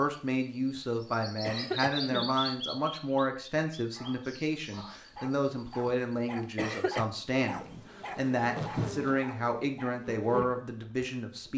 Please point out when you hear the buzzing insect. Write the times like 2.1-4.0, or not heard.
7.5-11.5.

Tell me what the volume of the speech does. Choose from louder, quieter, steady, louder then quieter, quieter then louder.
steady.